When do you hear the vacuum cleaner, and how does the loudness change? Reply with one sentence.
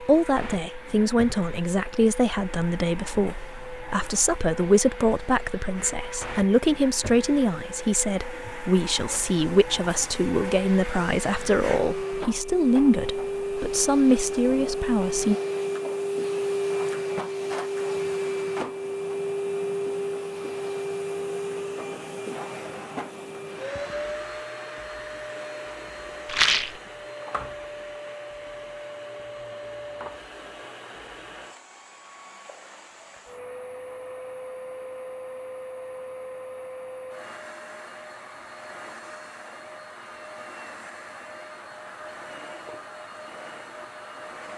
You can hear the vacuum cleaner from 0.0 to 44.5 s, getting louder then quieter.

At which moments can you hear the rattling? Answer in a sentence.
The rattling can be heard from 26.2 to 26.8 s.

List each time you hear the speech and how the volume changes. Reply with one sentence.
The speech can be heard from 0.0 to 15.3 s, at a steady volume.